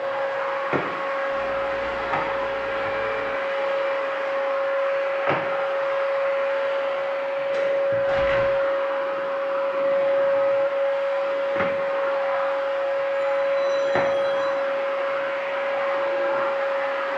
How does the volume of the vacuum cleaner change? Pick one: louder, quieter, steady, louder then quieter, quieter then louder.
steady.